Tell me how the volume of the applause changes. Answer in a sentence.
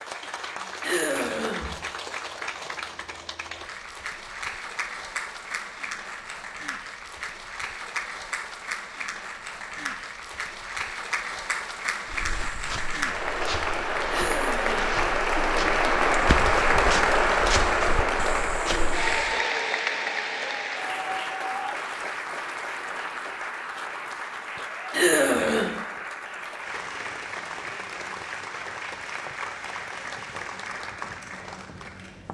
The volume of the applause goes up, then down.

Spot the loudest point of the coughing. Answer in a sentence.
The volume of the coughing peaks at 25 seconds.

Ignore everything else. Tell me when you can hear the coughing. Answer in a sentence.
The coughing can be heard from 0.8 to 1.8 s, from 14.1 to 14.9 s and from 24.9 to 25.8 s.